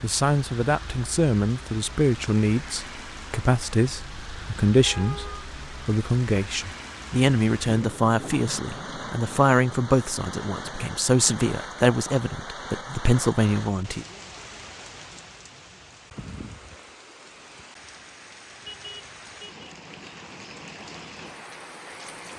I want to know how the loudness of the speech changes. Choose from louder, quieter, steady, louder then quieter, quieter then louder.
steady.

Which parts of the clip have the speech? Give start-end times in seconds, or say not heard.
0.0-14.1.